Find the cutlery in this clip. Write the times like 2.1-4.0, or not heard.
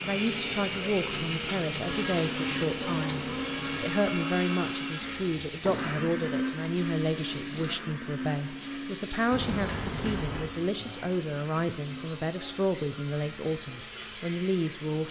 not heard.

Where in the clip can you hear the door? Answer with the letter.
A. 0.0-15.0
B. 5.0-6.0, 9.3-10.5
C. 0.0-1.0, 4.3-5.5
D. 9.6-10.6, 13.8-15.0
B.